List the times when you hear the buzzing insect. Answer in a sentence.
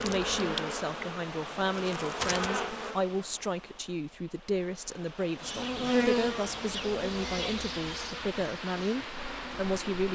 You can hear the buzzing insect from 0.0 to 3.0 s and from 5.4 to 10.1 s.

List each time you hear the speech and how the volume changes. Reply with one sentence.
You can hear the speech from 0.0 to 10.1 s, at a steady volume.